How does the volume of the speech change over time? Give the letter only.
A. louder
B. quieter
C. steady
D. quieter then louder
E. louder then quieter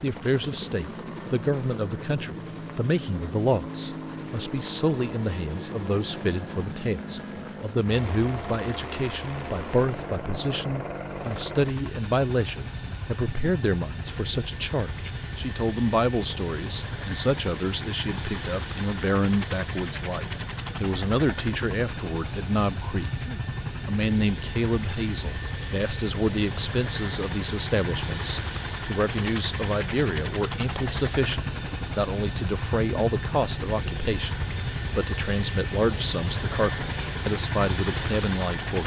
C.